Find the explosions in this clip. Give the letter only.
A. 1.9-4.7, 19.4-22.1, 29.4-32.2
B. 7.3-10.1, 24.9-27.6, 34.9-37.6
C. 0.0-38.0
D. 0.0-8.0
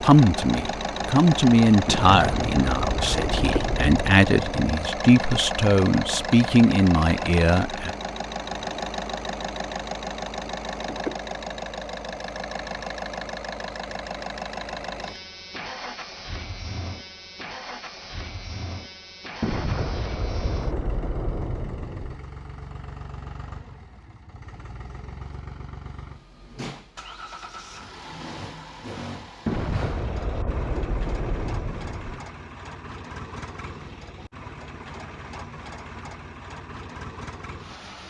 A.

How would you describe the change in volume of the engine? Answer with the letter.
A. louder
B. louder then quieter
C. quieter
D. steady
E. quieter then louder
C.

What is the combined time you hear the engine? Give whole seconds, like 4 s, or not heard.
38 s.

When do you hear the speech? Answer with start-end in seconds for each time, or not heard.
0.0-8.0.